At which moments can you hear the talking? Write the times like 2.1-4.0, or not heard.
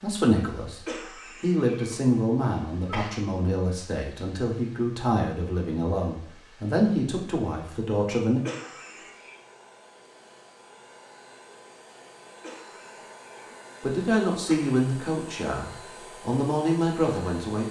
0.0-0.8, 1.4-8.4, 13.8-17.6.